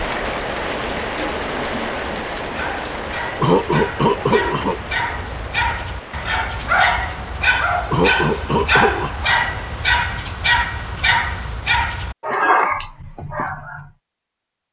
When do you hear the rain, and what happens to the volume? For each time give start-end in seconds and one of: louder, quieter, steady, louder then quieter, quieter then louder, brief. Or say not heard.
0.0-10.0 quieter.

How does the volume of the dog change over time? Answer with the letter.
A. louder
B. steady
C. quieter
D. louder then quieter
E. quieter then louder
A.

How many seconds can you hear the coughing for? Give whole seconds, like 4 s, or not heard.
3 s.